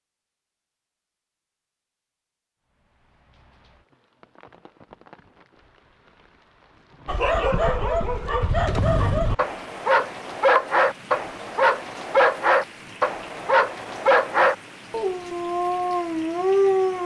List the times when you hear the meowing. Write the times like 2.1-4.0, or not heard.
not heard.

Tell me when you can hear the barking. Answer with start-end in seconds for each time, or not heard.
7.0-17.0.